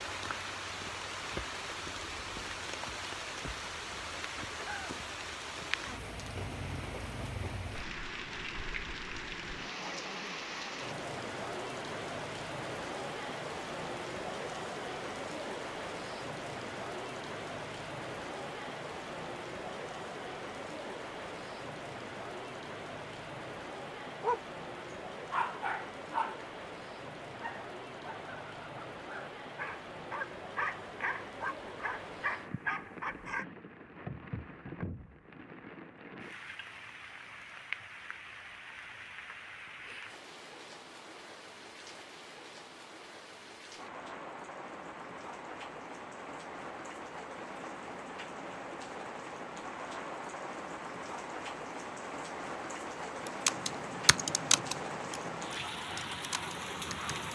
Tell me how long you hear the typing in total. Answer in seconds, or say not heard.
4 s.